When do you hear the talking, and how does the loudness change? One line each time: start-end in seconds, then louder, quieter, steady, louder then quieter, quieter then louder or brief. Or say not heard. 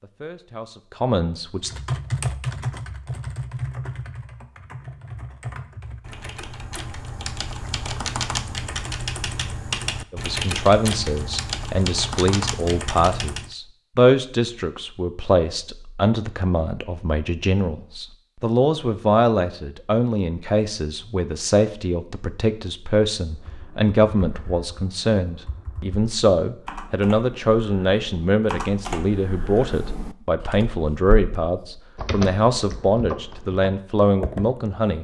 0.0-1.7 brief
10.1-35.0 steady.